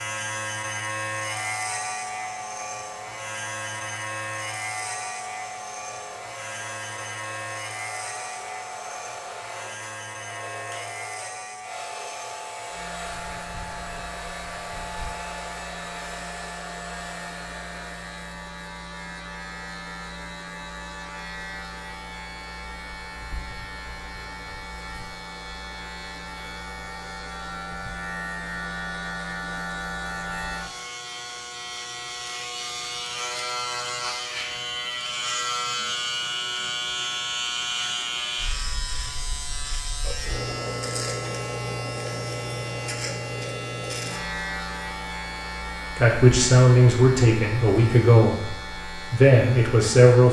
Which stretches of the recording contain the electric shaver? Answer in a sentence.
The electric shaver can be heard from 0.0 to 50.2 s.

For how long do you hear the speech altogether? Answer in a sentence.
You can hear the speech for 4 seconds altogether.